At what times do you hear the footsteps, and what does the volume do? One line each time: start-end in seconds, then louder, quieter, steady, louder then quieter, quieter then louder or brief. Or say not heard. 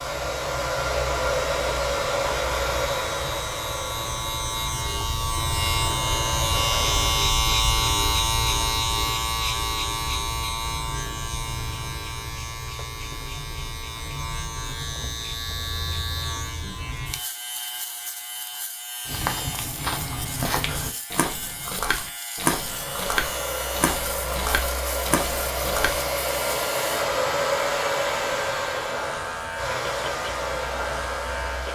19.1-26.1 steady.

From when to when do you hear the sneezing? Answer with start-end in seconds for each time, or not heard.
not heard.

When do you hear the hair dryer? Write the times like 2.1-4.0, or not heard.
0.0-7.2, 22.5-31.7.